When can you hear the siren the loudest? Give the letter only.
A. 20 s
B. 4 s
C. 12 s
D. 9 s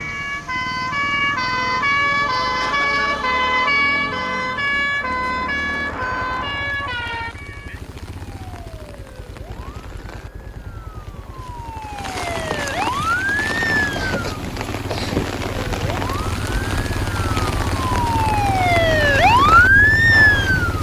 A.